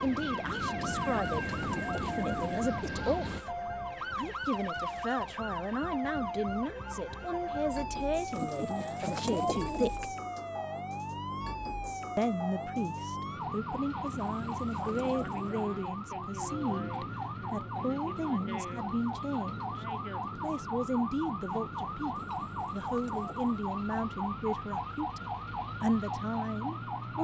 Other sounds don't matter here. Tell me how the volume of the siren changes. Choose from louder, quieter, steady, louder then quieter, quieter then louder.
steady.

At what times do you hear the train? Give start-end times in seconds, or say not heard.
0.0-3.4.